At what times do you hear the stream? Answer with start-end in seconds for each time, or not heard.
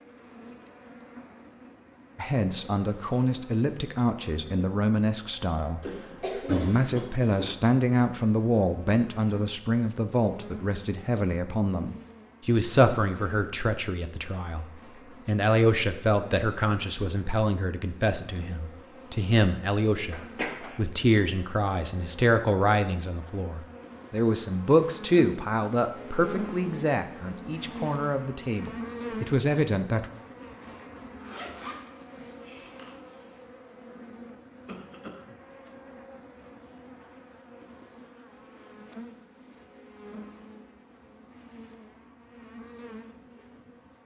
not heard.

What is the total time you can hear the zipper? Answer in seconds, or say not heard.
2 s.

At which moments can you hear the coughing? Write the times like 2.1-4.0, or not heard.
5.8-7.5, 20.1-20.8, 34.6-35.4.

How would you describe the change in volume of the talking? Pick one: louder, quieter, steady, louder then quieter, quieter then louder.
steady.